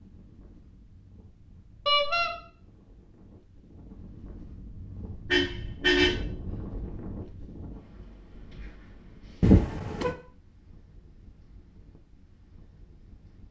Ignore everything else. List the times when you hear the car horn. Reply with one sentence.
You can hear the car horn from 1.9 to 2.3 s, from 5.3 to 6.2 s and from 9.4 to 10.2 s.